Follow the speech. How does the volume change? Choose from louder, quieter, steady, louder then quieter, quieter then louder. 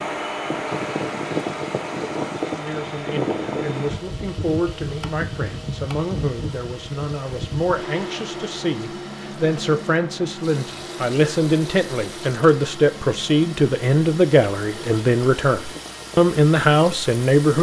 louder.